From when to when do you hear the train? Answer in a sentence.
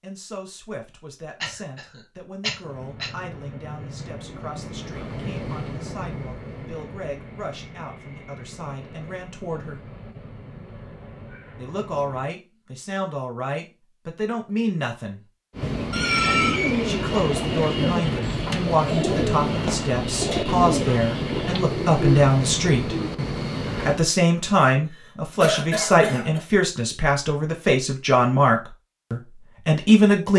You can hear the train from 2.6 to 12.3 s and from 15.5 to 24.0 s.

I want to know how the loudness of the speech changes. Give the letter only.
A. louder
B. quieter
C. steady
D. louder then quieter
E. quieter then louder
A.